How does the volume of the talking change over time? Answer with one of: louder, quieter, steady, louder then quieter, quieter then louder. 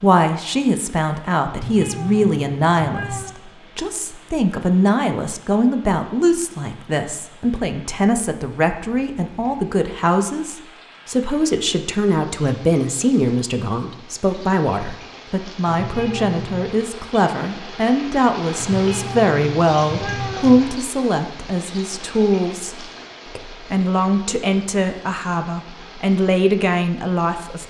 steady.